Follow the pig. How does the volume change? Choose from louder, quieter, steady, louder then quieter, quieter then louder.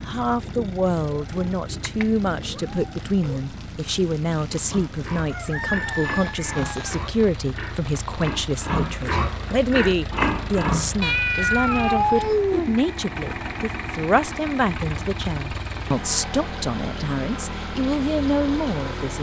louder.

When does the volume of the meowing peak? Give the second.
12 s.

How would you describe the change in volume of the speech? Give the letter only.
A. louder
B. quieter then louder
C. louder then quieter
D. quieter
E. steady
E.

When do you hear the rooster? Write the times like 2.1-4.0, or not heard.
5.3-7.0.